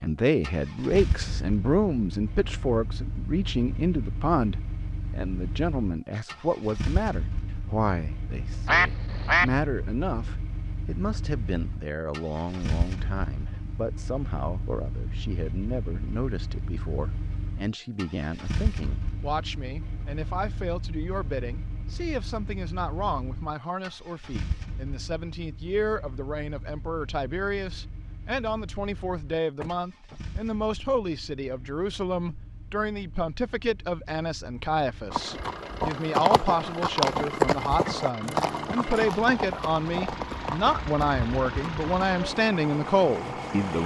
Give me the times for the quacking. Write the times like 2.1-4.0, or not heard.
8.7-9.5.